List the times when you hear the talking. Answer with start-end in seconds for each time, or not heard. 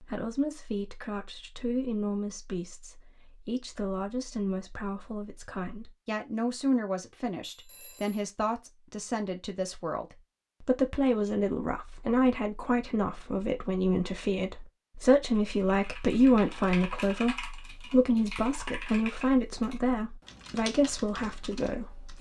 0.0-22.1.